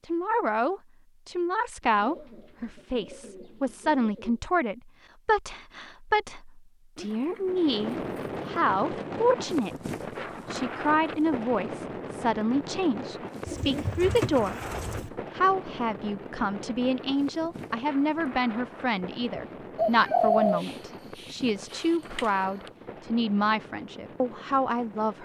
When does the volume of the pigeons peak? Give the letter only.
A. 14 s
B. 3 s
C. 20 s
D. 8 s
C.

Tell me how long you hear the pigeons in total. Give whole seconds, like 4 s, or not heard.
8 s.